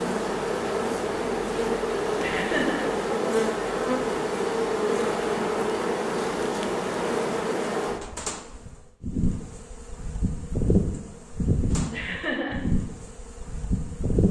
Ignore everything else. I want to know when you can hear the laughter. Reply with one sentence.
You can hear the laughter from 2.2 to 2.9 s and from 11.9 to 12.6 s.